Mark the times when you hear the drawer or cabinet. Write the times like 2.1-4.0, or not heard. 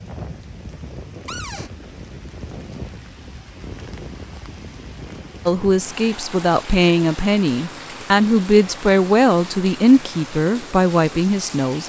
1.2-1.7.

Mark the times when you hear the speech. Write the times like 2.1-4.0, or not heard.
5.5-11.8.